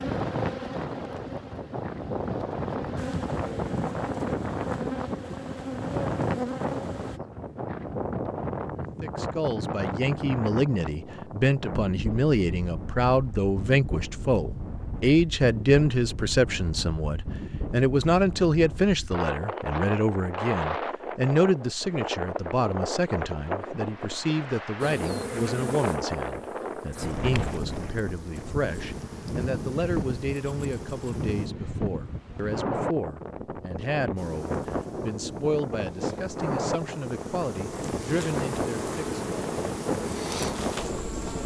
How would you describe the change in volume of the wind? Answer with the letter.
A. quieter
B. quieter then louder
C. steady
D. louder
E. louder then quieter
C.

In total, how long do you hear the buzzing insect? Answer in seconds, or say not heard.
21 s.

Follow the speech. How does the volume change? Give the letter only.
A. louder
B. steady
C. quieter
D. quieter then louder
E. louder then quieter
C.